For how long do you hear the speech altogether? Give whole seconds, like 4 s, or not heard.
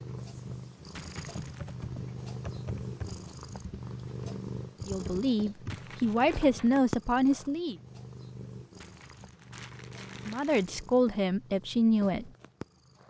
5 s.